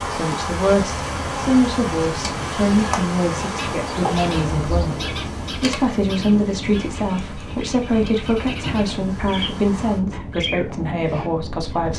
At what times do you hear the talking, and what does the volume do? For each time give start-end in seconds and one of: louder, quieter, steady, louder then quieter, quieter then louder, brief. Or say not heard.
0.0-11.9 steady.